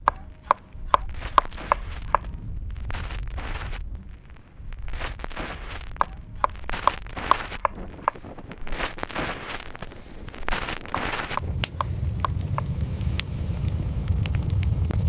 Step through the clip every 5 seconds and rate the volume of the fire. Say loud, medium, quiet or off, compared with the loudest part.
quiet, medium, loud.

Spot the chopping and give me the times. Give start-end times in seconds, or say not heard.
0.1-2.2, 6.0-8.1, 10.9-12.6.